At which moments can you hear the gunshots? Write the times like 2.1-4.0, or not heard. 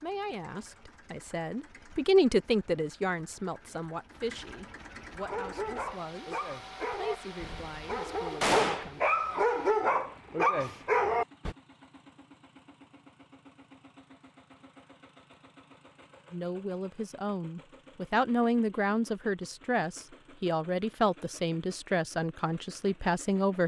8.4-8.9.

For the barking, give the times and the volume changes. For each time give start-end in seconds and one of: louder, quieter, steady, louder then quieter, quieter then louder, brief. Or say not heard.
5.2-11.6 louder.